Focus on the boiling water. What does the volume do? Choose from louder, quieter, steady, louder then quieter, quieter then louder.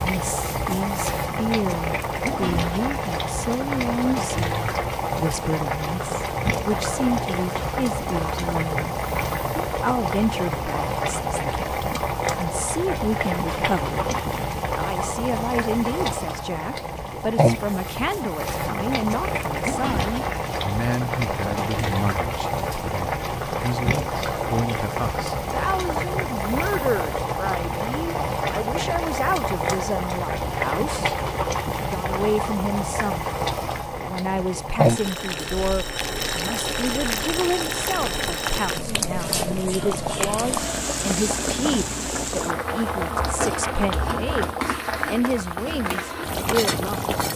steady.